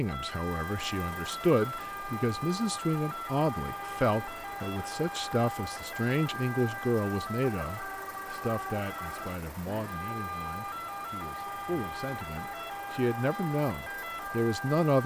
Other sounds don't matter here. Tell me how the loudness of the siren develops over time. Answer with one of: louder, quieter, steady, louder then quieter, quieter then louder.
steady.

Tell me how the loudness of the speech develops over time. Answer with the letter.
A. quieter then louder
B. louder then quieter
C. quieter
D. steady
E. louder
A.